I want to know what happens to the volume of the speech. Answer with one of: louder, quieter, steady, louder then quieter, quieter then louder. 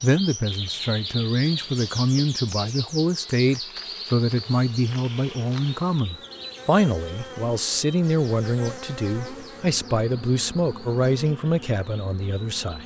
steady.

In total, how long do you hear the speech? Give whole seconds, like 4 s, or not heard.
13 s.